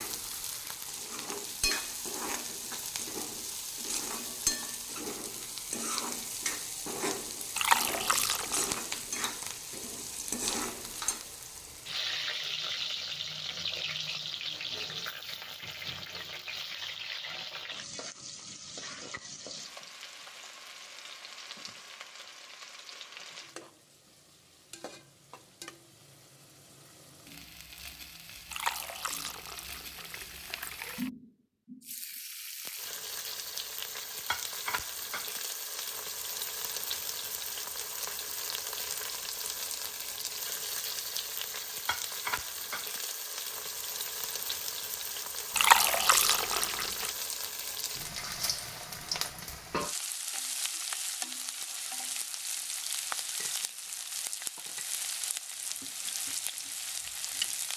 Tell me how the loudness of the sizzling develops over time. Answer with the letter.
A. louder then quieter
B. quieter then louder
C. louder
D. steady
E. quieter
B.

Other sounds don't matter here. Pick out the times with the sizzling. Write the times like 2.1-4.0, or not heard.
0.0-57.7.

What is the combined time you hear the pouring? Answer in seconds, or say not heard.
5 s.